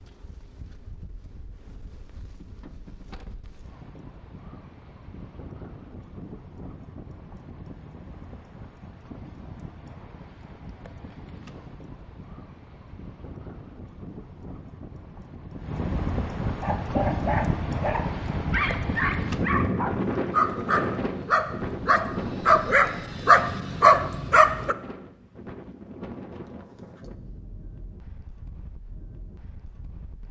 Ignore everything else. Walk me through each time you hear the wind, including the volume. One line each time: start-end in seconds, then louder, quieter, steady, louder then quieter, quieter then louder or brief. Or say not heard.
0.0-30.2 louder then quieter.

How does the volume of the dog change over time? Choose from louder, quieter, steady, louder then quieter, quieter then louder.
louder.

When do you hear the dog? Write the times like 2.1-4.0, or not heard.
16.6-24.8.